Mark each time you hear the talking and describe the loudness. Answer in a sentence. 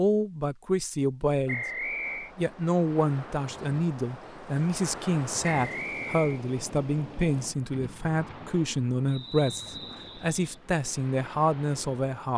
The talking can be heard from 0.0 to 12.3 s, at a steady volume.